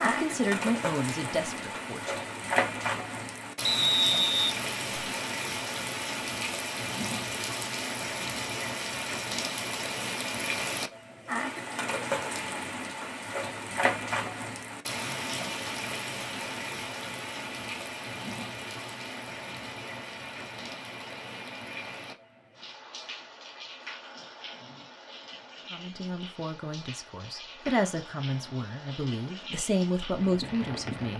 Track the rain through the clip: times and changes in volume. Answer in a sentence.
You can hear the rain from 0.0 to 31.1 s, getting quieter.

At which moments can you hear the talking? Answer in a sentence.
The talking can be heard from 0.0 to 2.1 s and from 25.7 to 31.1 s.